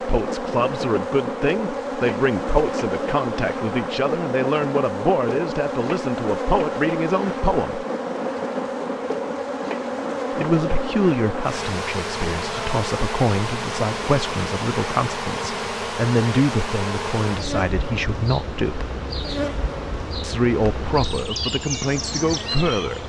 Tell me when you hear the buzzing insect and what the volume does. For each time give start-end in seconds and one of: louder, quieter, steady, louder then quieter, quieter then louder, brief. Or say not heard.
0.0-23.0 steady.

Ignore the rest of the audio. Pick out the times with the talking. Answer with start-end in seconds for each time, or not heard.
0.0-7.8, 10.3-18.9, 20.2-23.0.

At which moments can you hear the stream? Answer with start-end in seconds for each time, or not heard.
not heard.